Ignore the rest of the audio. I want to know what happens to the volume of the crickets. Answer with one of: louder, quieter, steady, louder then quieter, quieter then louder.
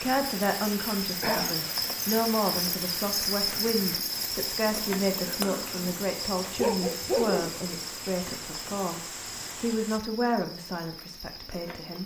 quieter.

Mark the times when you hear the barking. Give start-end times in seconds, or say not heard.
6.5-7.5.